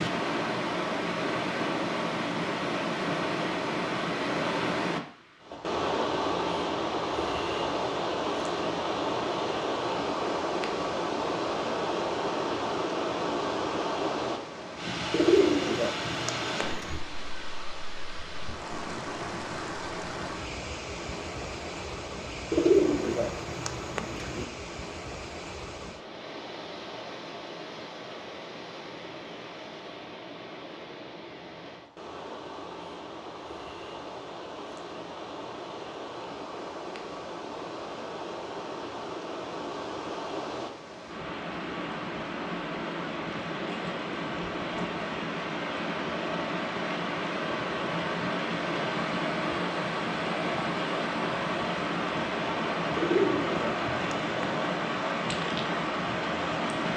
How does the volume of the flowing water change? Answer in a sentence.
The loudness of the flowing water goes down, then up.